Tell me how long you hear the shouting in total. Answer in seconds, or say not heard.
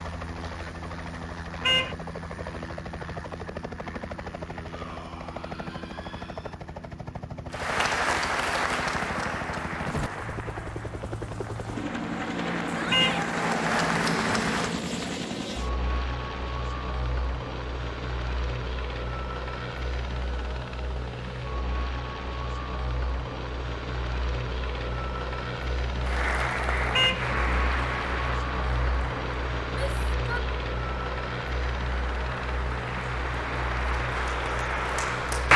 3 s.